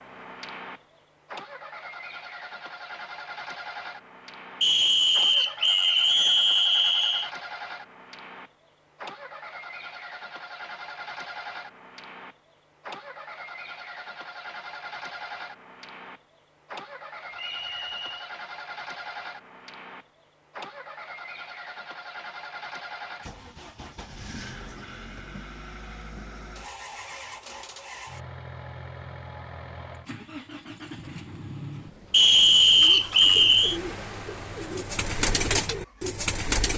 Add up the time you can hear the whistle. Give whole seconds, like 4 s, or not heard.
5 s.